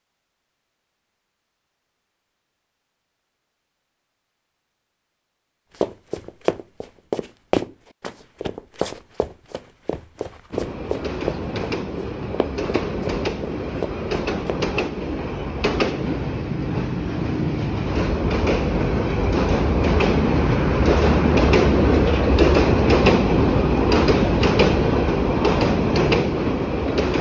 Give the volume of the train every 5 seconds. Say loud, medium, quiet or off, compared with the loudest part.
off, off, medium, medium, loud, loud.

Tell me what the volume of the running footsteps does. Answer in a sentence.
The loudness of the running footsteps goes down.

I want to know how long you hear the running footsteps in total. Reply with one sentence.
The running footsteps can be heard for 9 seconds in total.